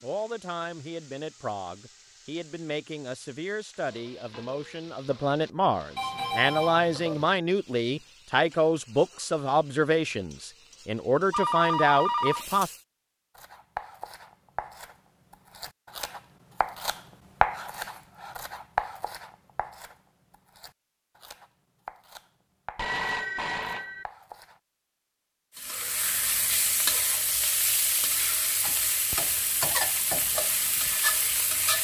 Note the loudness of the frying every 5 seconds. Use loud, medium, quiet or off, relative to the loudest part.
quiet, quiet, quiet, off, off, loud, loud.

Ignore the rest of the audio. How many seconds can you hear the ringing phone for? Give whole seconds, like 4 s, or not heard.
4 s.